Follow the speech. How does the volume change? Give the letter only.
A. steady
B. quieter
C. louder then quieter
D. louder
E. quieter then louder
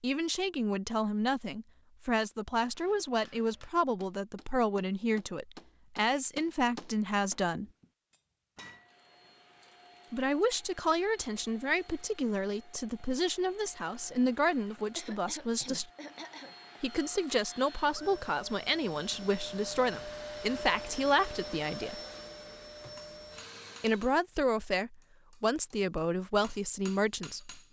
A.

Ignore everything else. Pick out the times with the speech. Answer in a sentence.
The speech can be heard from 0.0 to 7.7 s, from 10.1 to 15.9 s, from 16.8 to 22.0 s and from 23.8 to 27.6 s.